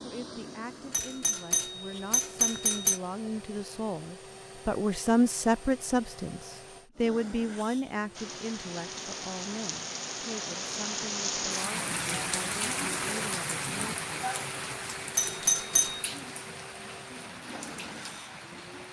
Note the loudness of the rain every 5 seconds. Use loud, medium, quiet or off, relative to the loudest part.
off, medium, loud, medium.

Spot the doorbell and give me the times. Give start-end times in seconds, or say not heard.
0.9-3.0, 15.2-16.1.